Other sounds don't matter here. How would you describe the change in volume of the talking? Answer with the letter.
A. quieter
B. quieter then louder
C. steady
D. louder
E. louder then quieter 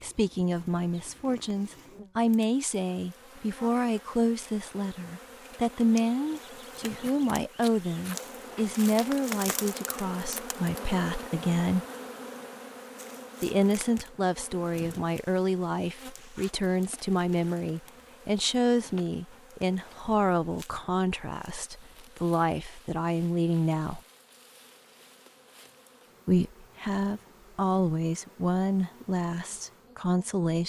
C.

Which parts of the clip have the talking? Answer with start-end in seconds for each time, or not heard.
0.0-11.8, 13.4-24.0, 26.2-30.6.